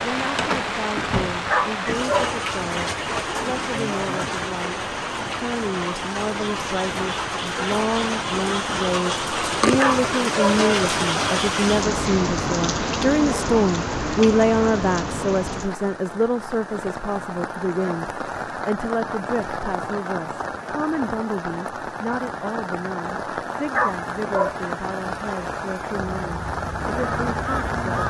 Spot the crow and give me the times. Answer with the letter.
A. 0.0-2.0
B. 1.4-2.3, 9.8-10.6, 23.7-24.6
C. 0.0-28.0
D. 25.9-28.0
D.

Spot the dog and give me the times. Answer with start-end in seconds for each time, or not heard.
1.4-2.3, 9.8-10.6, 23.7-24.6.